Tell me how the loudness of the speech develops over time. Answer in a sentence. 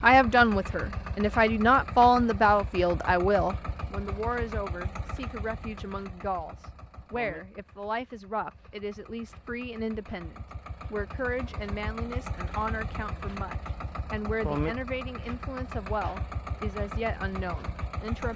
The volume of the speech goes down.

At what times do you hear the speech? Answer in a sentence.
You can hear the speech from 0.0 to 18.3 s.